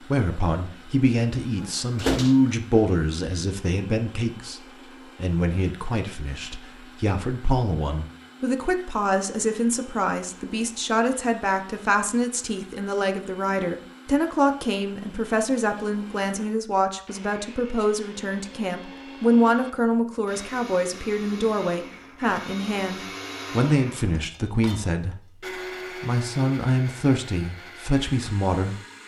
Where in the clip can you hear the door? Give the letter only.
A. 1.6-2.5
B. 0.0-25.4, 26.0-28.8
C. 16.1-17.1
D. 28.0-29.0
A.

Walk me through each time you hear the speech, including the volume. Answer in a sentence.
The speech can be heard from 0.0 to 25.4 s, at a steady volume; and briefly from 26.0 to 28.8 s.